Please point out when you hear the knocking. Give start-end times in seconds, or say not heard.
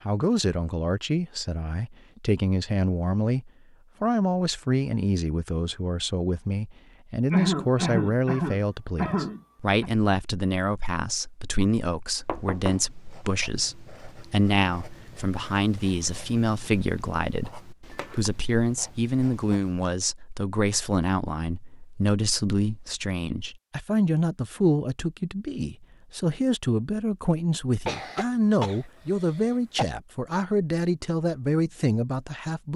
12.2-12.9.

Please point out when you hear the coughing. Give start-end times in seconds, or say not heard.
7.3-9.9, 27.9-29.9.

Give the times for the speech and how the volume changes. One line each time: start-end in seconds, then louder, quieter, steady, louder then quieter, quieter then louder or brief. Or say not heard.
0.1-32.7 steady.